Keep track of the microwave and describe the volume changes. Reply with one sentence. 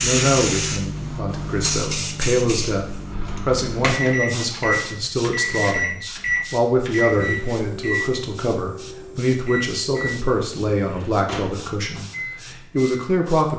The loudness of the microwave goes up, then down.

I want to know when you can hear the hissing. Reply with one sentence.
The hissing can be heard from 0.0 to 13.5 s.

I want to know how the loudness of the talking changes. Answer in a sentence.
The loudness of the talking stays about the same.